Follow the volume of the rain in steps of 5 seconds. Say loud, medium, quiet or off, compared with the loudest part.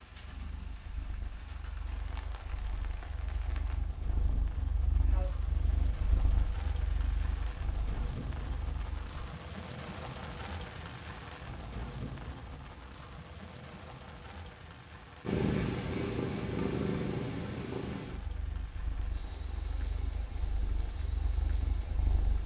medium, loud, loud, medium, medium.